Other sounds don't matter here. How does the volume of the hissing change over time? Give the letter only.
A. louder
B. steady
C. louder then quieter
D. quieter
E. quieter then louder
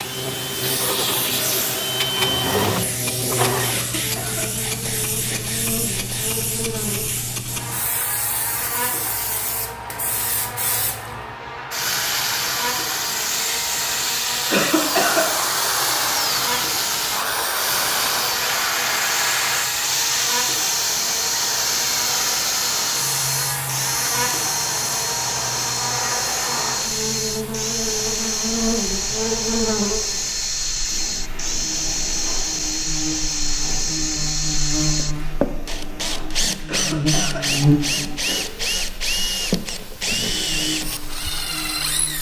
D.